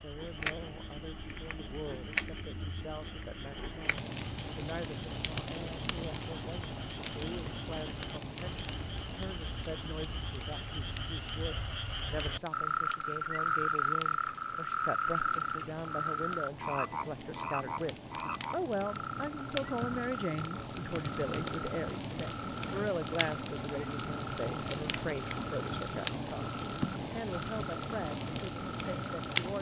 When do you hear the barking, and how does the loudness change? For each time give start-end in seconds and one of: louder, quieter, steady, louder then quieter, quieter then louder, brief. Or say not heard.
not heard.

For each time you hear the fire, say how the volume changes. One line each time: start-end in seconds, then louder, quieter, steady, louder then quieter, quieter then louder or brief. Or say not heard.
0.0-29.5 quieter then louder.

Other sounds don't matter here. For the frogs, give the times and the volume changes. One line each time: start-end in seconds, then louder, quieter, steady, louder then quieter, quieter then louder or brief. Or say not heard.
0.0-29.4 louder then quieter.